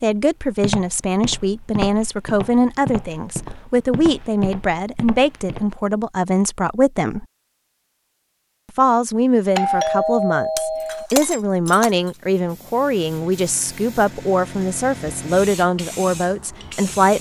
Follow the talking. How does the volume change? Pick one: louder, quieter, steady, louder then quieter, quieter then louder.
steady.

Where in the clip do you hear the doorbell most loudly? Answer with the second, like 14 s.
10 s.